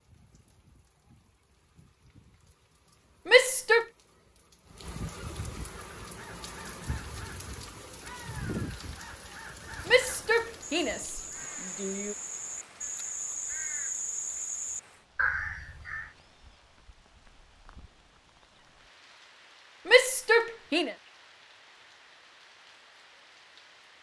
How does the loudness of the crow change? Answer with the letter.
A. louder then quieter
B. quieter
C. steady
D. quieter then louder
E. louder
E.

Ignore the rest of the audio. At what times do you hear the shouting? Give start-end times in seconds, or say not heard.
3.2-3.9, 9.8-12.2, 19.9-20.9.